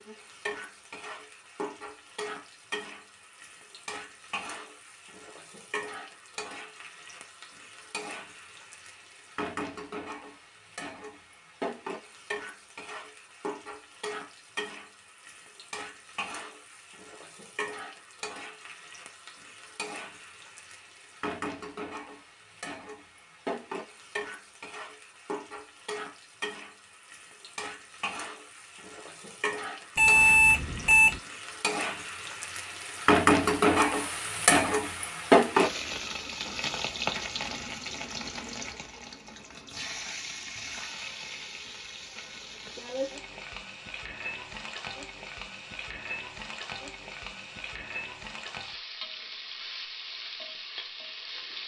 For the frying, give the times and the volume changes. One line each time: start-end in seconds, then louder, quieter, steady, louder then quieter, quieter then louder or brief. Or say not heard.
0.0-51.6 louder then quieter.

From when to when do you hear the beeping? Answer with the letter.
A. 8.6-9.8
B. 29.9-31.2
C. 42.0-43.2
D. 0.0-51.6
B.